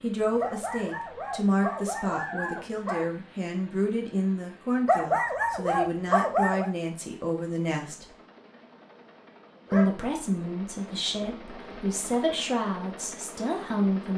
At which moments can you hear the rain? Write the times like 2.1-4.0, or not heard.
not heard.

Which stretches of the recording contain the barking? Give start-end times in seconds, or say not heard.
0.4-3.0, 4.8-6.7, 9.7-12.3.